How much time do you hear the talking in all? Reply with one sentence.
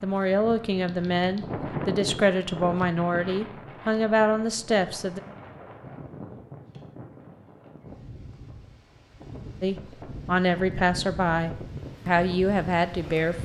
You can hear the talking for 9 seconds altogether.